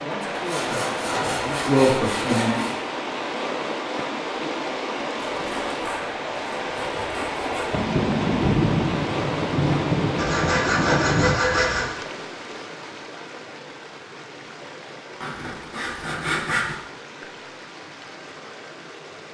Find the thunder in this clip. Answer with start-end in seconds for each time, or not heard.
7.7-11.4.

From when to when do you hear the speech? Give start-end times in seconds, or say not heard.
0.0-2.6.